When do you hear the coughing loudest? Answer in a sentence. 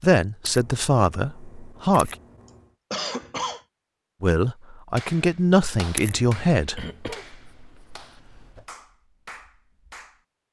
The volume of the coughing peaks at 3 seconds.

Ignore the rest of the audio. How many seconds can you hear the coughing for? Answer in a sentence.
You can hear the coughing for 3 seconds altogether.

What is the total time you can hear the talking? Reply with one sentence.
The talking can be heard for 5 seconds in total.